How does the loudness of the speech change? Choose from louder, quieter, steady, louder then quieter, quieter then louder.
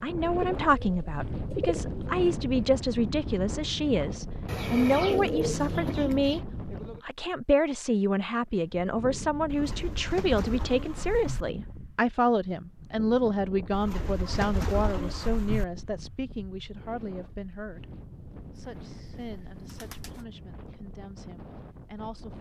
quieter.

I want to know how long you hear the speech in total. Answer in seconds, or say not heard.
22 s.